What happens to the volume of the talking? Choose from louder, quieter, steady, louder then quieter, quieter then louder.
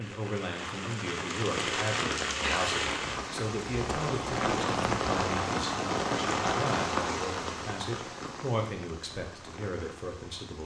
steady.